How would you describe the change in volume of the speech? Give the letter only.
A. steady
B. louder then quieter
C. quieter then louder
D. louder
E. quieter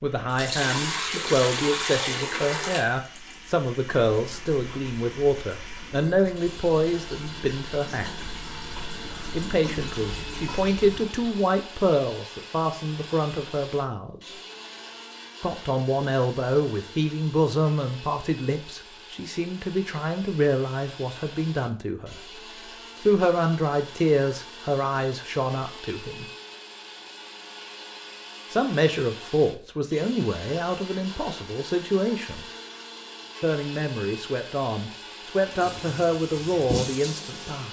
A.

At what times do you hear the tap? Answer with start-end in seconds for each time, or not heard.
0.2-11.4, 35.4-37.6.